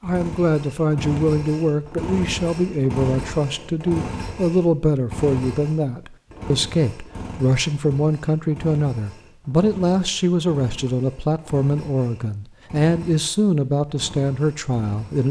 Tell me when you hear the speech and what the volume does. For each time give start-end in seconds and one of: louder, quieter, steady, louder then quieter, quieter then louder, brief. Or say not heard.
0.0-15.2 steady.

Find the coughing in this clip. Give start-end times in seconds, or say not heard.
not heard.